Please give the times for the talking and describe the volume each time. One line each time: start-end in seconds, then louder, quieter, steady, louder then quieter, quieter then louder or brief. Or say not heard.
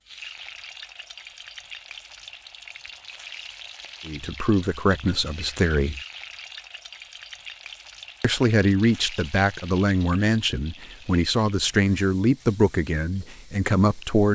4.0-6.0 brief
8.2-14.3 steady.